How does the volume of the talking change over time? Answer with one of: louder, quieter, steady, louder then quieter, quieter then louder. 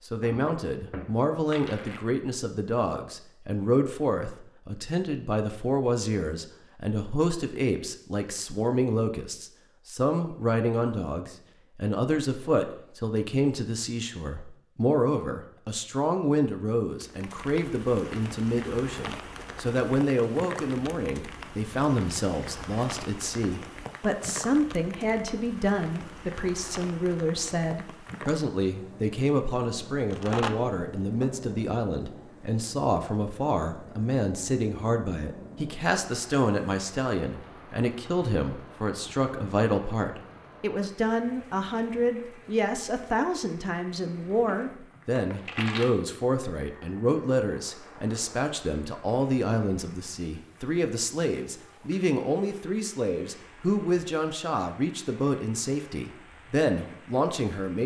steady.